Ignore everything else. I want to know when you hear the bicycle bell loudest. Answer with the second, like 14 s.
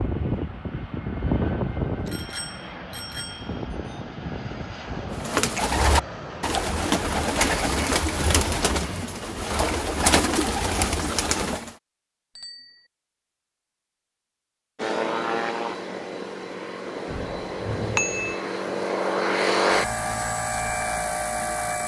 18 s.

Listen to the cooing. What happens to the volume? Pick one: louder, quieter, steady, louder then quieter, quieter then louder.
steady.